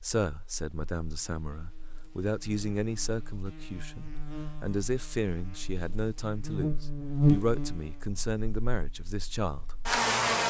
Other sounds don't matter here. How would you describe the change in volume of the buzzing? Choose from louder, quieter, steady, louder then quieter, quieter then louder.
louder then quieter.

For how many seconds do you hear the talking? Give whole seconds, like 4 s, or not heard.
10 s.